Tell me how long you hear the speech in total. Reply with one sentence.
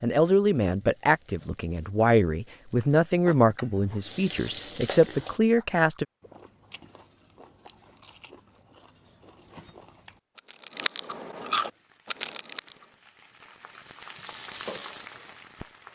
The speech can be heard for 6 seconds in total.